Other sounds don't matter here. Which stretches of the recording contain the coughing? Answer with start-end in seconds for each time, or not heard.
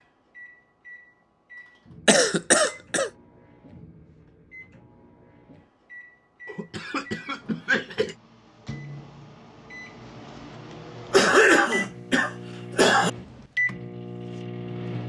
2.0-3.1, 6.5-8.2, 11.1-13.1.